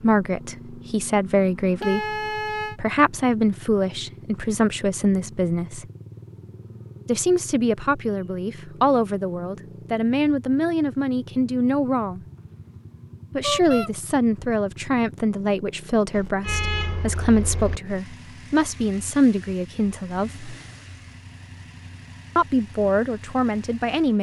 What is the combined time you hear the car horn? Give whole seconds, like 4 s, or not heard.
3 s.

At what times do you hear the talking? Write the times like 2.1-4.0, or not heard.
0.0-5.8, 7.0-12.2, 13.3-20.4, 22.4-24.1.